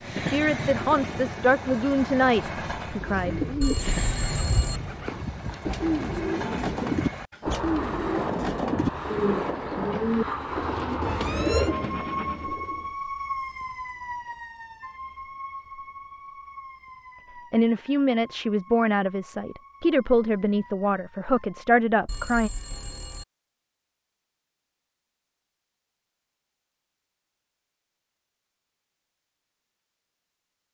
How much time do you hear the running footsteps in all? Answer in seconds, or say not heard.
not heard.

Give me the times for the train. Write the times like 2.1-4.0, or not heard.
0.0-12.5.